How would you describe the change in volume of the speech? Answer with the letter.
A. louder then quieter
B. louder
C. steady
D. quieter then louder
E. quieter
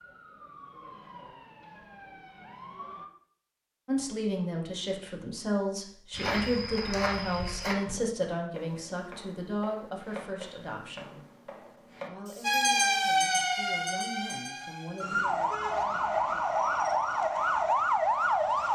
E.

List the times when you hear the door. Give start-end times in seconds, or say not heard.
not heard.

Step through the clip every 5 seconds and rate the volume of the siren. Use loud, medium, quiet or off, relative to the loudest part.
quiet, off, loud, loud.